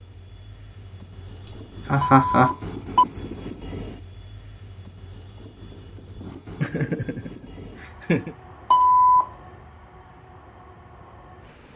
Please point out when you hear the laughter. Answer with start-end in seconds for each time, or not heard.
1.4-2.5, 6.6-8.3.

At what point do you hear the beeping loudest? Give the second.
9 s.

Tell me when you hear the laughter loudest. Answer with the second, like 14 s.
2 s.